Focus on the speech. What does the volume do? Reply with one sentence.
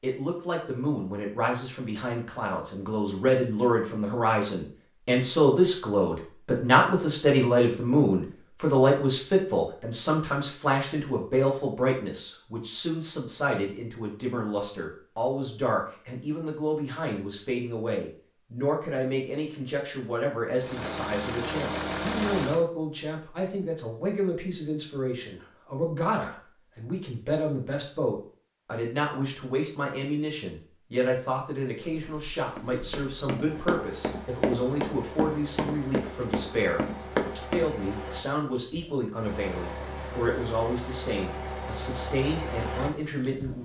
The volume of the speech goes down.